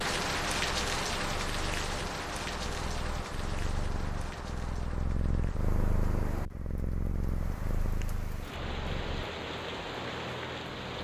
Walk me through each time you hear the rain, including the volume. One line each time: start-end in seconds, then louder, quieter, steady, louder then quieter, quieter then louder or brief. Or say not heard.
0.0-10.9 quieter then louder.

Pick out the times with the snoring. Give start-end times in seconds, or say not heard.
not heard.